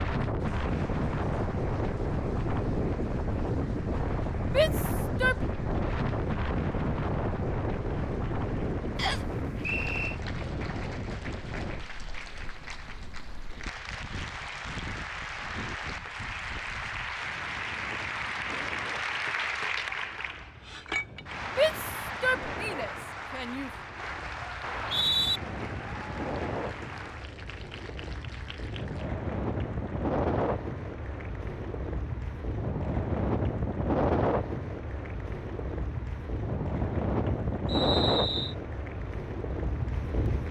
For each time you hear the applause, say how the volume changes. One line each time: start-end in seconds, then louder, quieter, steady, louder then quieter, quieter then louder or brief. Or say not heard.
0.2-40.4 louder then quieter.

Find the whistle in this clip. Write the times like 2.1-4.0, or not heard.
8.9-10.2, 24.6-25.4, 37.6-38.5.